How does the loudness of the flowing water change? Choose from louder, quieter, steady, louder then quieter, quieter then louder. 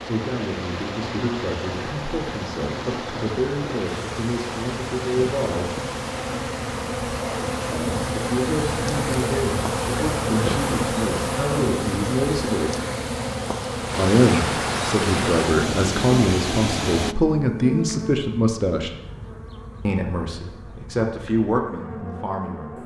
louder.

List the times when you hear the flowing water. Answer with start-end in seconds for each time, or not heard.
0.0-17.1.